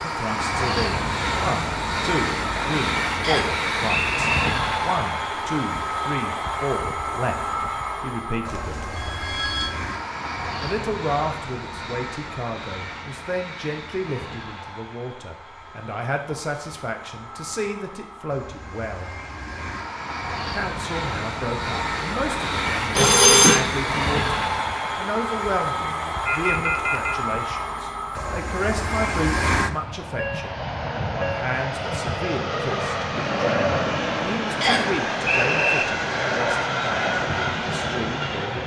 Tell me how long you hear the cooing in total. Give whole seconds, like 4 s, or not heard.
not heard.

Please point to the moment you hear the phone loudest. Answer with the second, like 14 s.
23 s.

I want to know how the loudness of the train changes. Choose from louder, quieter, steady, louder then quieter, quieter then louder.
quieter then louder.